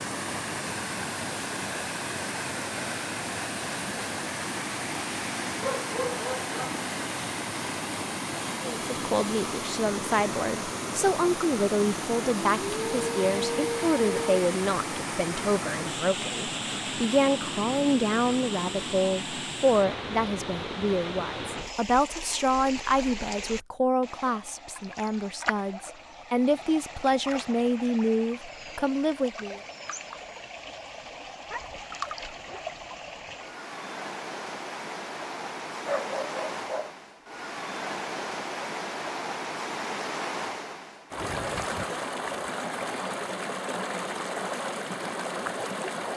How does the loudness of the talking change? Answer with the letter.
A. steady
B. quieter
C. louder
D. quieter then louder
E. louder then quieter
A.